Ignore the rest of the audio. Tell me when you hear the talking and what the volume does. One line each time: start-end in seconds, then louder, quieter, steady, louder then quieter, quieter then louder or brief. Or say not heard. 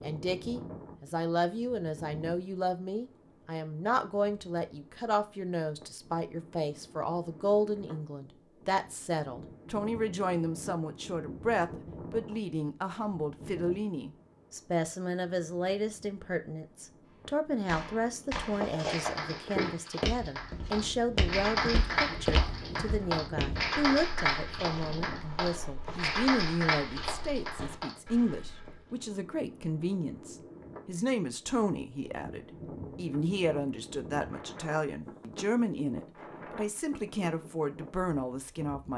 0.0-38.9 steady.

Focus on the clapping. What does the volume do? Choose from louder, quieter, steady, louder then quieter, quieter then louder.
louder.